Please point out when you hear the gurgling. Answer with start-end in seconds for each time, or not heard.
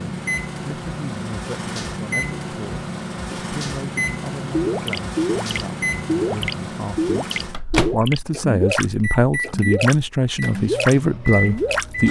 4.5-11.8.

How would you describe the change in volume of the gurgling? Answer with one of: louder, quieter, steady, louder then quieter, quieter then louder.
steady.